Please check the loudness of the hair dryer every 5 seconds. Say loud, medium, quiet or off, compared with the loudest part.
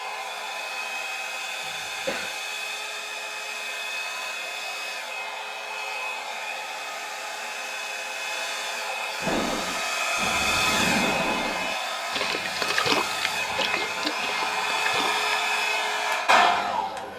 medium, medium, loud, loud.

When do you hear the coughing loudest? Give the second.
2 s.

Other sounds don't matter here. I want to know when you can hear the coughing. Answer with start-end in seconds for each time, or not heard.
1.6-2.4, 13.3-14.2.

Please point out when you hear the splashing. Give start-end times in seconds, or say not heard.
9.2-15.4.